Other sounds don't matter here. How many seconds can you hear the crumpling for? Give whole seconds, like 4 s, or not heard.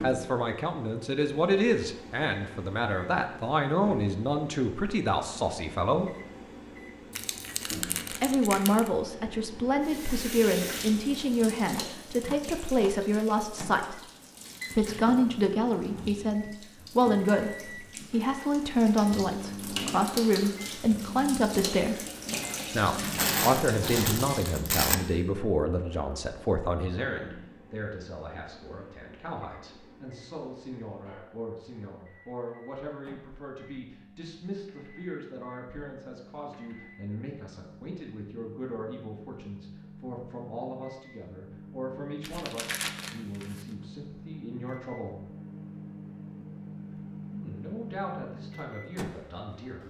5 s.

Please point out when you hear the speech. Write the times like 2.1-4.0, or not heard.
0.0-6.1, 8.1-14.0, 14.7-22.1, 22.7-45.2, 47.3-49.8.